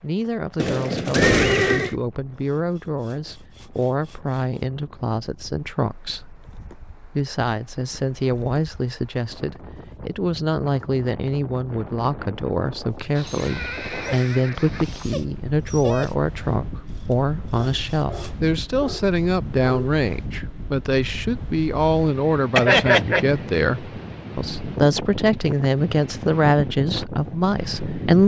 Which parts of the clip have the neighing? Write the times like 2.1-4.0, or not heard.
0.6-1.9, 13.2-15.2, 22.6-23.2.